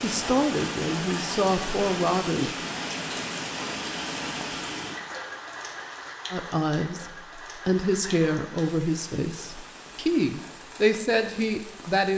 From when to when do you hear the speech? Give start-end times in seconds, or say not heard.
0.0-2.7, 6.3-12.1.